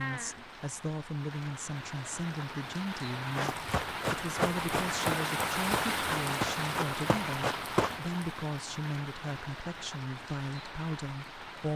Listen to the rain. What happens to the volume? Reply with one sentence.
The loudness of the rain goes up, then down.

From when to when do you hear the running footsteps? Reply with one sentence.
You can hear the running footsteps from 3.4 to 8.0 s.